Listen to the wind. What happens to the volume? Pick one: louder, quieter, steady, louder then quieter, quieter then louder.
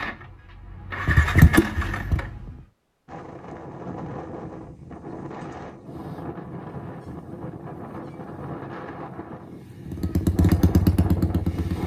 steady.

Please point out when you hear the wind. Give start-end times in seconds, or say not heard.
3.0-11.8.